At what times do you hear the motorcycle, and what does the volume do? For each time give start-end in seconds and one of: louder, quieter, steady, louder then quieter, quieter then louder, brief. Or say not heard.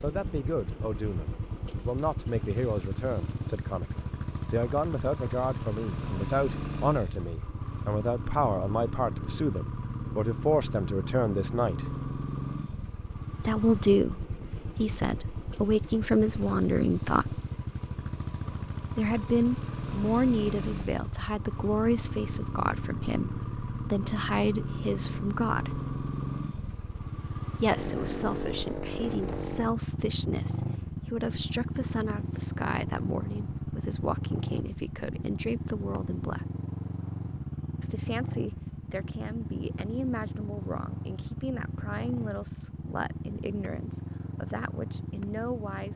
0.0-45.9 steady.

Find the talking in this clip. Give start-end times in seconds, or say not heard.
0.0-11.9, 13.4-17.4, 18.9-25.8, 27.6-36.5, 37.8-45.9.